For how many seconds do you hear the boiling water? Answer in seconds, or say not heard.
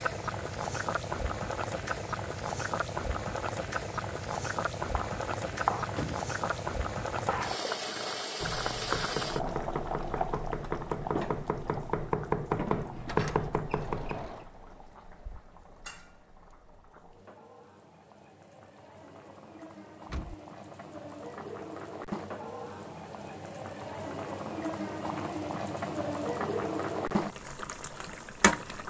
29 s.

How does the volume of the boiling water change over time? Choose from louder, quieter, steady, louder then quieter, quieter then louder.
quieter then louder.